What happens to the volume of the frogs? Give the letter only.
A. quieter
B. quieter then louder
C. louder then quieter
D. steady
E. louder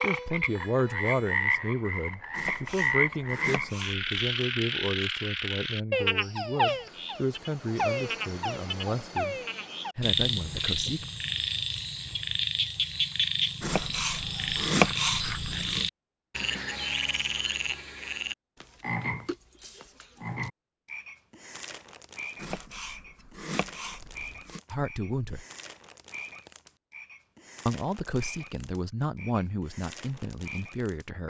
A.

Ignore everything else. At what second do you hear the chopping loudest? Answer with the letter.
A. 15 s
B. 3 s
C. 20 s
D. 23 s
A.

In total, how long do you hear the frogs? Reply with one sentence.
You can hear the frogs for 31 seconds altogether.